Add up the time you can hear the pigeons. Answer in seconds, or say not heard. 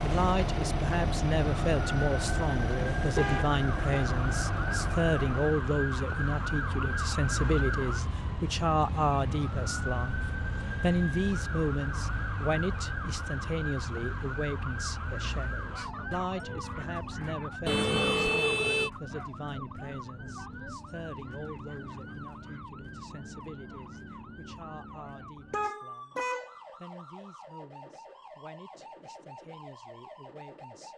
not heard.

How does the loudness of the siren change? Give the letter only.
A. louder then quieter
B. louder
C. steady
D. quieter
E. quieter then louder
D.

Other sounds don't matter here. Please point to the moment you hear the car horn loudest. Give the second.
18 s.